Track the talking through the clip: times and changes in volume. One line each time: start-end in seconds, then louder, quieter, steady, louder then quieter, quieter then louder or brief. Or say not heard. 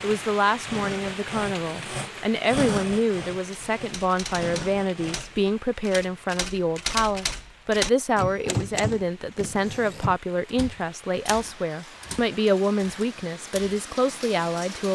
0.0-14.9 steady.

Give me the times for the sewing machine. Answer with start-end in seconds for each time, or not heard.
0.0-5.5.